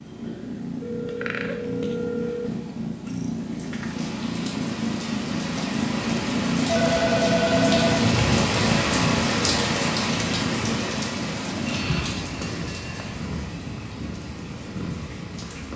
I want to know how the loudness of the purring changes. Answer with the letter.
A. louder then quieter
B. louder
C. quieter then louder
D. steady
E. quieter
A.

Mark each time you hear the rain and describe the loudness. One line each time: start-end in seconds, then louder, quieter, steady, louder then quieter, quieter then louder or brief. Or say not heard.
3.4-15.7 louder then quieter.